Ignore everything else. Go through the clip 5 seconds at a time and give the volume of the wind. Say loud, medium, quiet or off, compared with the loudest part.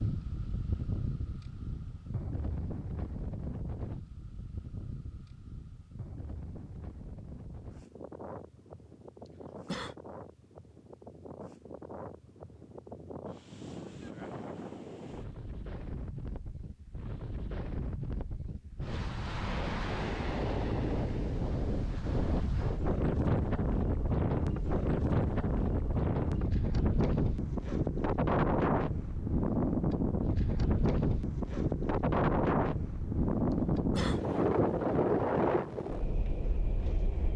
medium, quiet, quiet, medium, loud, loud, loud, loud.